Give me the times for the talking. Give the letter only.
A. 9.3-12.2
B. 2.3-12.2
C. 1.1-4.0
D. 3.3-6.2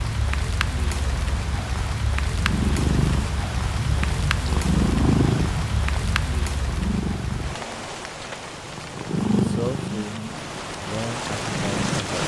A.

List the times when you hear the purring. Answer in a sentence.
You can hear the purring from 2.3 to 12.2 s.